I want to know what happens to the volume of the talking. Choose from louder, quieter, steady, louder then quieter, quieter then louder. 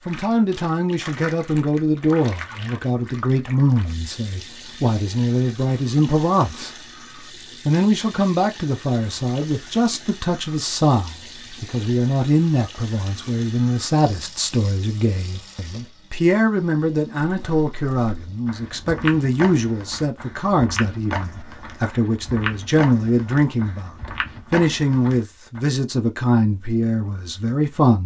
steady.